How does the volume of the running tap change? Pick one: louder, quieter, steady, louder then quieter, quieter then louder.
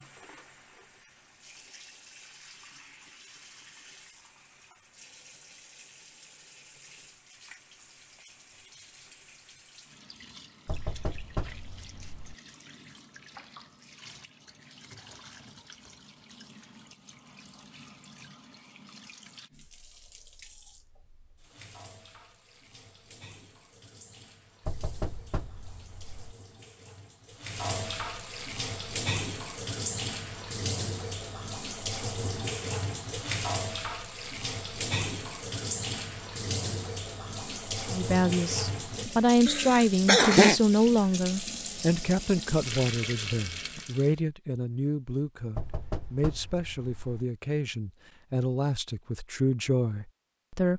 louder.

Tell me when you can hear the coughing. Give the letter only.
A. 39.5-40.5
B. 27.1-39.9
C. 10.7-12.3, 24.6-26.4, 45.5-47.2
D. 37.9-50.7
A.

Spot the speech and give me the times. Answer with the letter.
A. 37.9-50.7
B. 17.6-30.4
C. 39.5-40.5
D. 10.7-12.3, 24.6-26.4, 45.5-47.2
A.